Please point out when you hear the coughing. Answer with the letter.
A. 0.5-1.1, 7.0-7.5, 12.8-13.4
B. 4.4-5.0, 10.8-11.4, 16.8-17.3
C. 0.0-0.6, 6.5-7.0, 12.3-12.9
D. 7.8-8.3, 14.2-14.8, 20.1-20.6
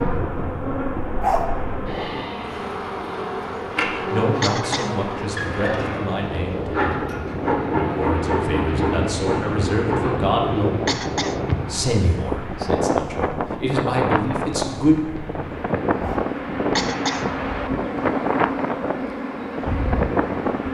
B.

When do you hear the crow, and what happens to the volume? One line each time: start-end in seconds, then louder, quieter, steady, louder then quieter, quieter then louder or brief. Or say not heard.
not heard.